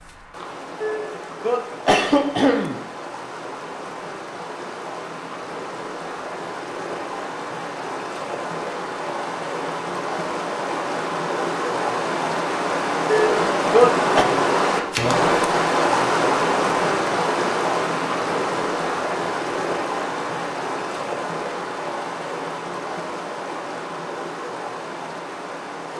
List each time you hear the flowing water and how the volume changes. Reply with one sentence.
You can hear the flowing water from 0.0 to 25.9 s, getting louder then quieter.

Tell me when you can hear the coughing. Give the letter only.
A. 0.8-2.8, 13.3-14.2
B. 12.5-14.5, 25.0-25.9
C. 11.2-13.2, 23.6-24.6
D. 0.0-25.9
A.